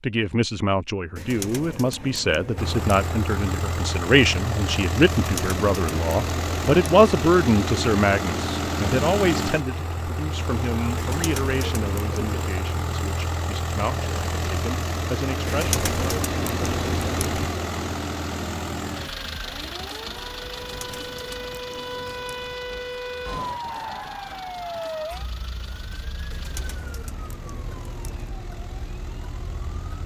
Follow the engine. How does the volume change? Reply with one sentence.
The volume of the engine goes down.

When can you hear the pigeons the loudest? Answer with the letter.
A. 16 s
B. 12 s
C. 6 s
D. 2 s
A.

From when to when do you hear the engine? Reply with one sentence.
You can hear the engine from 2.5 to 30.0 s.